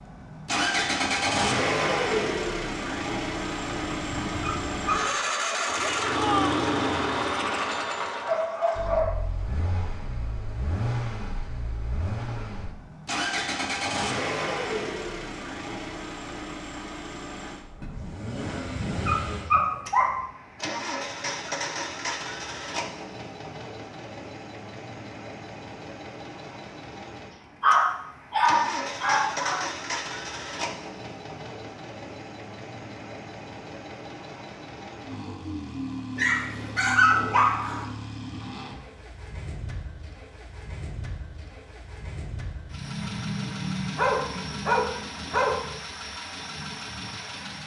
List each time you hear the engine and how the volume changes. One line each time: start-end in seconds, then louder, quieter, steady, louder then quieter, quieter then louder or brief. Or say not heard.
0.0-47.6 quieter.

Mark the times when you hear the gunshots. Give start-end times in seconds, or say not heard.
not heard.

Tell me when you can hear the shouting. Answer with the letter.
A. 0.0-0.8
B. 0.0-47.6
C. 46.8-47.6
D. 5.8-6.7
D.